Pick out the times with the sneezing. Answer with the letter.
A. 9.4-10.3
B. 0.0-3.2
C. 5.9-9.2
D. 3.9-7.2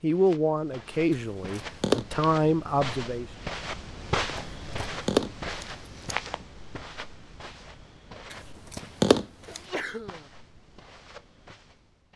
A.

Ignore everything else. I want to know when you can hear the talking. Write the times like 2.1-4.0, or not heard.
0.0-3.2.